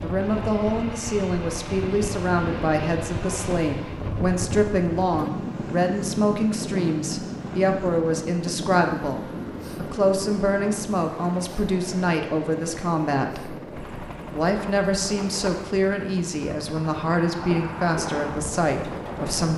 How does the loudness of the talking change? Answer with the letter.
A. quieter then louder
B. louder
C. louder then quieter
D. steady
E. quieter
D.